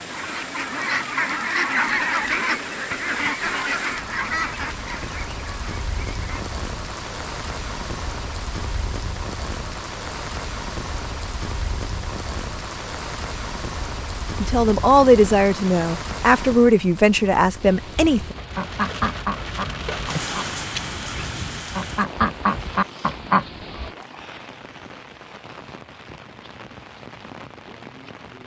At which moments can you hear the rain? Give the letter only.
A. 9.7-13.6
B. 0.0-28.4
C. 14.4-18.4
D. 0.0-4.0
B.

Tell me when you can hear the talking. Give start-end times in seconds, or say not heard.
14.4-18.4.